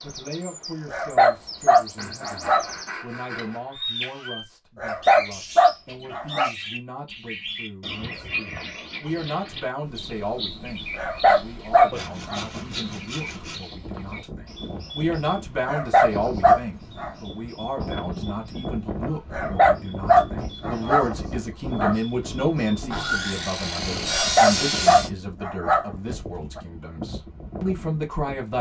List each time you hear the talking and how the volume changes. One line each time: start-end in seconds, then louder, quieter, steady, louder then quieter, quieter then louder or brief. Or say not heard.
0.0-28.5 louder.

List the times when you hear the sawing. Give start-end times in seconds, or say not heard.
1.9-3.6, 11.9-13.7, 22.8-25.1.